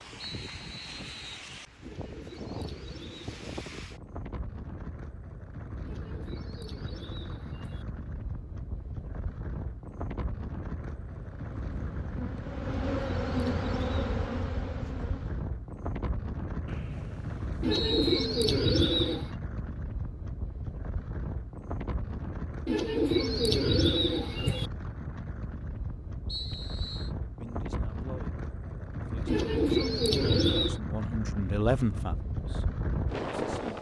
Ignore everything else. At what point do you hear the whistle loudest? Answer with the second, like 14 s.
18 s.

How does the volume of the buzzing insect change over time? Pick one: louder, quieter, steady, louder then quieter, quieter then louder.
louder then quieter.